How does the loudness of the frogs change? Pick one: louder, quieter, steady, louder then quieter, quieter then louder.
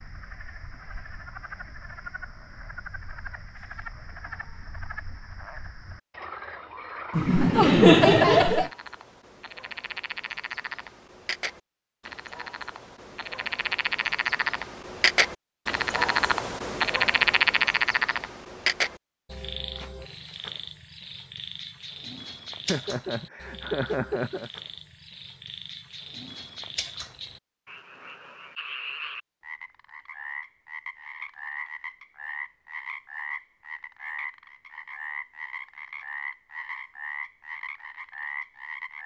louder then quieter.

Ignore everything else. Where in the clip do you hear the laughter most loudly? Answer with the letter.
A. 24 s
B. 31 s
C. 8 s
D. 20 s
C.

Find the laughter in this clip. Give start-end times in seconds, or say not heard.
7.2-8.7, 22.6-24.5.